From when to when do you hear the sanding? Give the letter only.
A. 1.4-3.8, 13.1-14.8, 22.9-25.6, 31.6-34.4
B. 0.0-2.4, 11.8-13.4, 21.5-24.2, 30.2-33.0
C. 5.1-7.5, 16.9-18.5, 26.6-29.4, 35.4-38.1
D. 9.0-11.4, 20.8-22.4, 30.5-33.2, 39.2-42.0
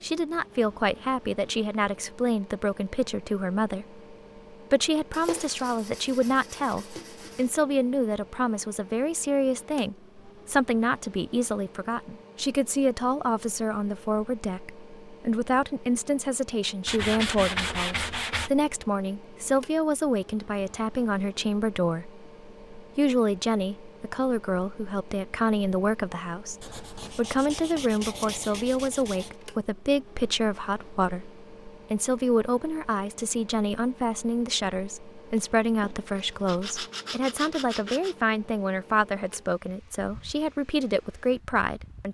C.